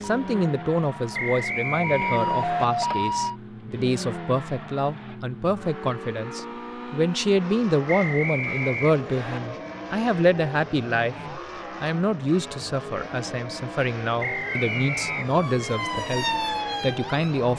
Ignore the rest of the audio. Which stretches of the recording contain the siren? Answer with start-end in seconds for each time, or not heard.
0.0-3.4, 14.4-17.5.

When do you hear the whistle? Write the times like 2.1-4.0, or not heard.
1.1-2.6, 7.8-9.4, 14.2-15.4.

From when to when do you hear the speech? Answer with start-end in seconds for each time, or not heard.
0.0-17.5.